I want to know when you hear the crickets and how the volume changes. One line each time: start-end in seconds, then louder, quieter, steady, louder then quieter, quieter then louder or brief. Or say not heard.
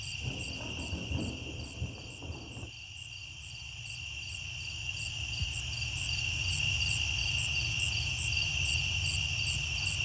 0.0-10.0 louder.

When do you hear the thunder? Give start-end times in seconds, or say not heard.
0.2-2.8.